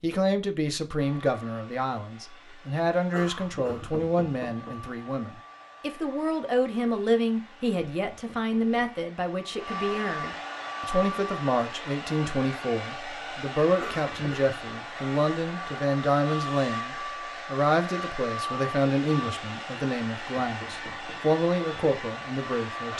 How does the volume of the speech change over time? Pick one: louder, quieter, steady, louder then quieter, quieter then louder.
steady.